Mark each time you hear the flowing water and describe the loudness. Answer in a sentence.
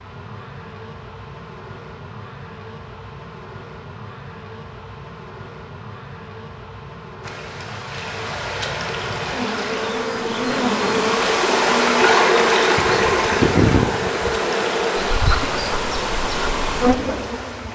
You can hear the flowing water from 7.2 to 17.6 s, getting louder then quieter.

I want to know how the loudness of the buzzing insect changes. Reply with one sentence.
The loudness of the buzzing insect goes up.